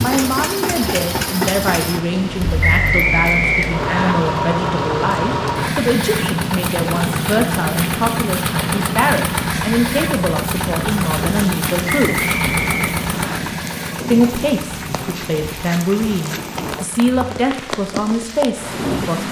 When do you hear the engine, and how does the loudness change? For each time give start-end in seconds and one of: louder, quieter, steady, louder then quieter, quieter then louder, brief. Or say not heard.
0.0-19.2 quieter.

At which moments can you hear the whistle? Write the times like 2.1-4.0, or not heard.
2.6-4.2, 11.8-13.4.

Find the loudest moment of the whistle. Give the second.
3 s.